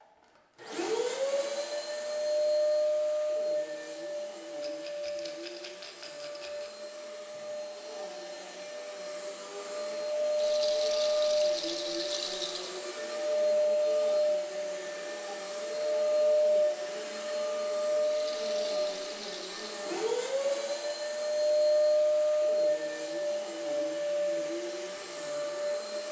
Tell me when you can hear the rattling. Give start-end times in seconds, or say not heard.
4.6-6.8, 10.3-12.8, 18.1-19.9.